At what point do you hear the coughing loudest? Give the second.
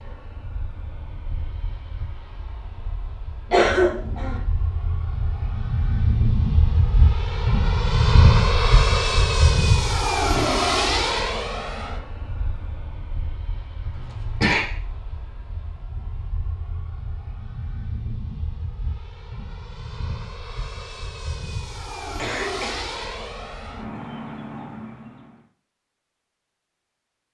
4 s.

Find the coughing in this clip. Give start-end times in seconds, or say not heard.
3.5-4.3, 13.9-14.7, 22.1-22.8.